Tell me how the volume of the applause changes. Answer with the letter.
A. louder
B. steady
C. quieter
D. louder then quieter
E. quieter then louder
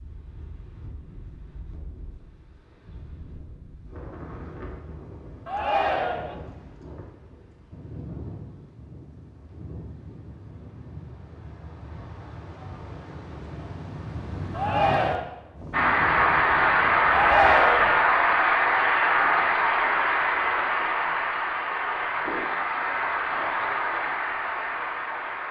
C.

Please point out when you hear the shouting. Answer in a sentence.
The shouting can be heard from 5.5 to 6.3 s, from 14.5 to 15.2 s and from 17.1 to 18.0 s.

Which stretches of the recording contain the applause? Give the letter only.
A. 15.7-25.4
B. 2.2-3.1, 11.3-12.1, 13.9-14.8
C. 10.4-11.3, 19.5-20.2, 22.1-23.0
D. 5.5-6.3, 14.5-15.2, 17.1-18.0
A.